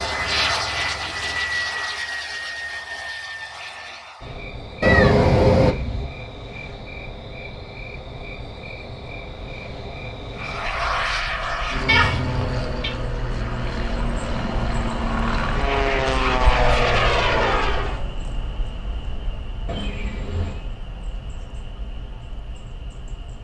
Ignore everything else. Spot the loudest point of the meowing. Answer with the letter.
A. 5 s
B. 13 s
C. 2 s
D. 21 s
A.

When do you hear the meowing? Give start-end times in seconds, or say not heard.
4.8-6.0, 11.8-12.9, 19.6-20.6.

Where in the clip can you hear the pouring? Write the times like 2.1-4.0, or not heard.
not heard.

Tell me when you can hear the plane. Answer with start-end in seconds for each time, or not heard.
0.0-4.5, 10.3-18.0.